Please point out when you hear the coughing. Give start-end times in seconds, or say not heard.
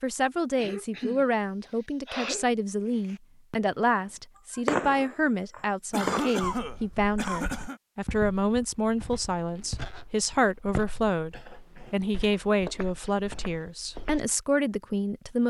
0.6-2.5, 5.9-7.8, 11.3-11.9.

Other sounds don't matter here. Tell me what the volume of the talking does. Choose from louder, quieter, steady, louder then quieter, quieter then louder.
steady.